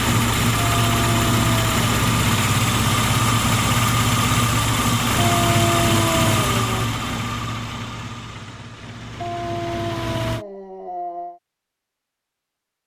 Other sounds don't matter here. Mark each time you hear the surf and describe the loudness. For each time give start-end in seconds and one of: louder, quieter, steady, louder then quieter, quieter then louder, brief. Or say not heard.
not heard.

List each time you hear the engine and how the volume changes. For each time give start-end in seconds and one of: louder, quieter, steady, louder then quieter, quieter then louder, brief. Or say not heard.
0.0-10.4 quieter.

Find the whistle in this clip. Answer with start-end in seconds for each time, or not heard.
not heard.